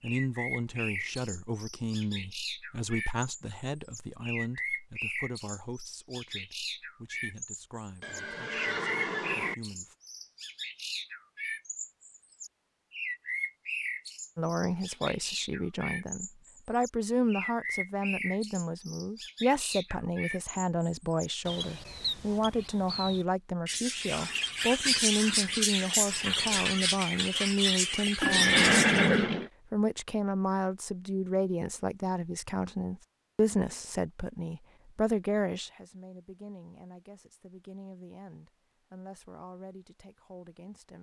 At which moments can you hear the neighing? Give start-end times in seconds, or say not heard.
8.0-9.6, 28.2-29.5.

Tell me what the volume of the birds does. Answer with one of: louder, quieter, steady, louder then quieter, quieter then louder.
louder.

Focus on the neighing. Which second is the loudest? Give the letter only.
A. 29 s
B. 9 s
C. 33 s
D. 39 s
A.